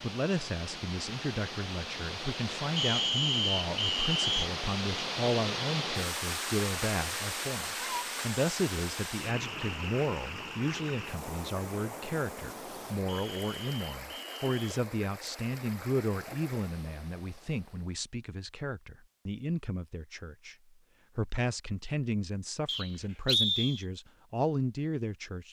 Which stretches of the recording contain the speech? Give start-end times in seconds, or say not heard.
0.0-20.6, 21.1-25.4.